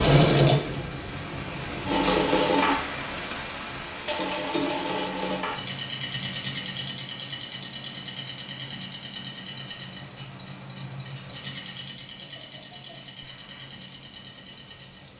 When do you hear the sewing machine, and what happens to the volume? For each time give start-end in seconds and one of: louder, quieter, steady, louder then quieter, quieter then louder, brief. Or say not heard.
0.0-15.1 quieter.